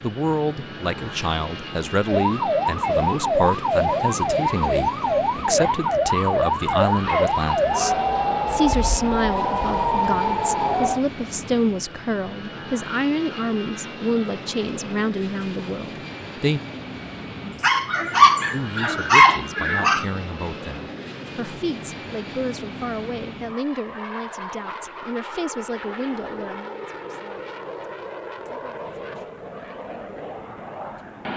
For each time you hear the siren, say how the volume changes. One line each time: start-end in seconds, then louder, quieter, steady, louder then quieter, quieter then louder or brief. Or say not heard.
2.0-11.1 steady.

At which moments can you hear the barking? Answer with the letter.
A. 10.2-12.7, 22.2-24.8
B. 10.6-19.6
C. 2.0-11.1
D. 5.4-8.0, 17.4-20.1
D.